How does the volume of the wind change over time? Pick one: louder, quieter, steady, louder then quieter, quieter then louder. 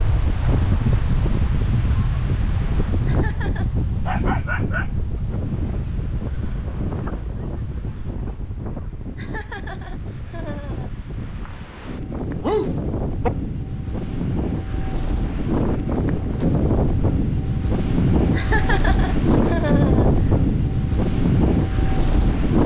quieter then louder.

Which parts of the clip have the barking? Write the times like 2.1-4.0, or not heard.
4.0-5.3, 12.4-13.3.